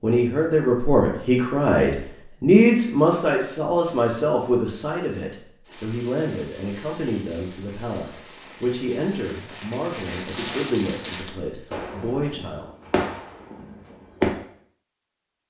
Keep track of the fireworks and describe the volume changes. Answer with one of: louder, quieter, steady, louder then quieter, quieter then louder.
louder.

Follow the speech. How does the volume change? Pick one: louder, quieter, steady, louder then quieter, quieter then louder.
quieter.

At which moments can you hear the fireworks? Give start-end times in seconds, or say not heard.
5.7-14.3.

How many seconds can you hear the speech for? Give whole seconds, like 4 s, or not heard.
13 s.